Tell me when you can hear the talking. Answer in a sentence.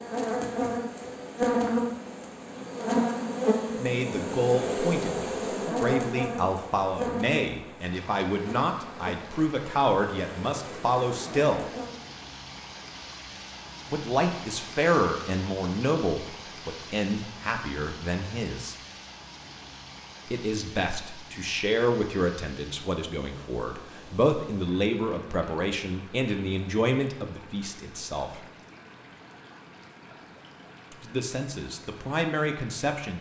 The talking can be heard from 3.8 to 11.7 s, from 13.9 to 18.8 s, from 20.3 to 28.4 s and from 30.9 to 33.1 s.